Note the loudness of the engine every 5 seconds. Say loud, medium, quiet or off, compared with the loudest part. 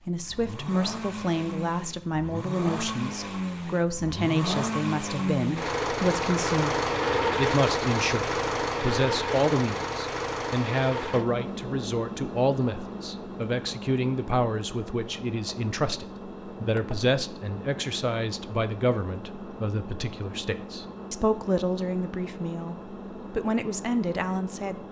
medium, loud, medium, quiet, quiet.